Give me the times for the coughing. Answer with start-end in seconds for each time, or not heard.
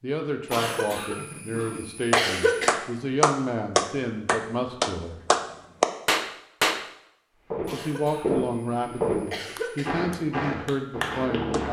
0.5-2.8, 7.7-9.9.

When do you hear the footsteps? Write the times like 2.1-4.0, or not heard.
7.5-11.6.